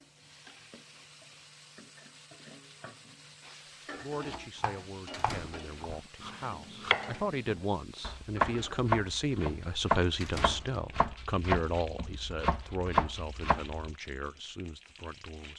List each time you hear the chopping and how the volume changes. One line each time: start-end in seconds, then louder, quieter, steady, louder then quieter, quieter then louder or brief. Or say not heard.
4.1-13.8 louder.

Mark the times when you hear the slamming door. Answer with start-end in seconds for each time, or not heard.
5.1-6.1, 10.2-11.2.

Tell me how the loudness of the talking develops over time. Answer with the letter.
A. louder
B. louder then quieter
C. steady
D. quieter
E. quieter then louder
B.